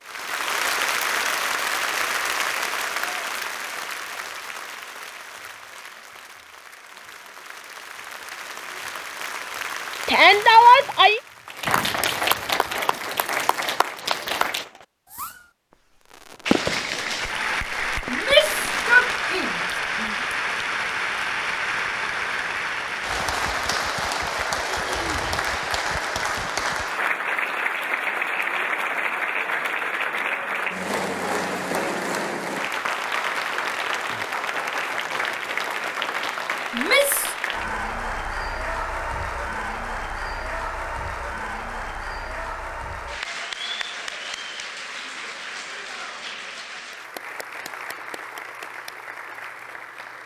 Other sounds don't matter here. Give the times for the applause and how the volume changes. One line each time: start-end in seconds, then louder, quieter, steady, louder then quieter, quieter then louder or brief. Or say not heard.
0.0-14.7 quieter then louder
16.4-50.2 quieter.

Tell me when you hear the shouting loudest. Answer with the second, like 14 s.
11 s.